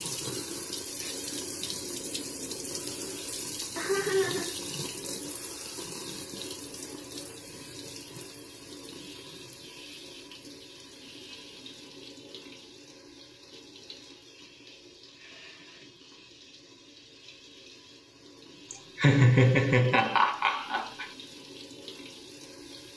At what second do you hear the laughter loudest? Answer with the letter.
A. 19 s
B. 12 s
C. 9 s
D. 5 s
A.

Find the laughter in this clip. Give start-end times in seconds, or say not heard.
3.8-4.5, 18.7-21.1.